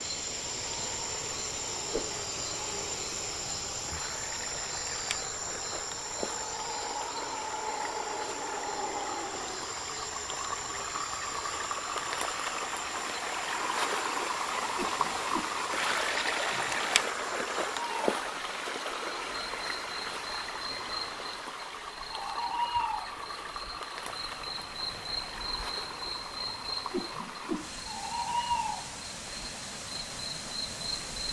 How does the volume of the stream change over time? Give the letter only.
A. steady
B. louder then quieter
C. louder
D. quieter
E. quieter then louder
B.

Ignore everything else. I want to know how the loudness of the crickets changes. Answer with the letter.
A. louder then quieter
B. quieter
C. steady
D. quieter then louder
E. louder
D.